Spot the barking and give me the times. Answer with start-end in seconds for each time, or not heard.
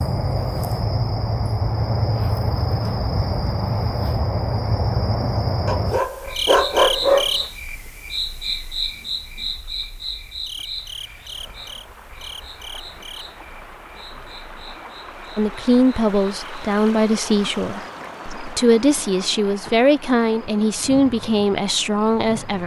5.7-7.5.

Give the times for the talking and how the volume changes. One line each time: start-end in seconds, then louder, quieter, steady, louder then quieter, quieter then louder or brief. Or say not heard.
15.3-22.6 steady.